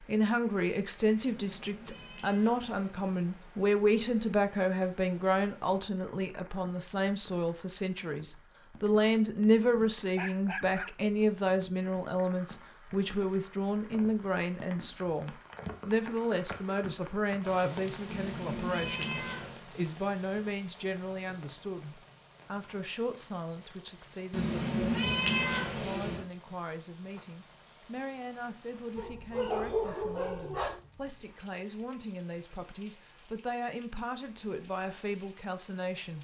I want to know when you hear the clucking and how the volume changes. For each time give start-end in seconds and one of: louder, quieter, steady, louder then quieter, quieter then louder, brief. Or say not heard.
not heard.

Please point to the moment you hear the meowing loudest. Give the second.
25 s.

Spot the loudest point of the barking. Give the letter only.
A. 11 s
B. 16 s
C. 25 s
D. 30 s
D.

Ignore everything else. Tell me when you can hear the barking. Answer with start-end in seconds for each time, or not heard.
9.6-11.4, 28.9-30.8.